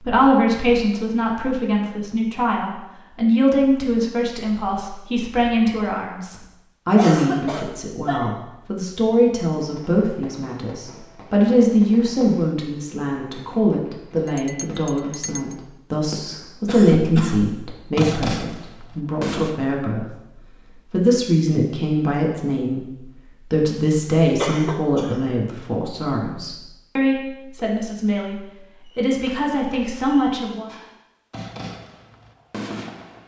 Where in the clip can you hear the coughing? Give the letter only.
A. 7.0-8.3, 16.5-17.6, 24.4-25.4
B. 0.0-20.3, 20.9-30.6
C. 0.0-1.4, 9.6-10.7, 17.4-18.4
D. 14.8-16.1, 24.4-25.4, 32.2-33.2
A.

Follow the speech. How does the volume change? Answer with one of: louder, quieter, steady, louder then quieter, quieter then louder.
steady.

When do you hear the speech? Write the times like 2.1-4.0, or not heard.
0.0-20.3, 20.9-30.6.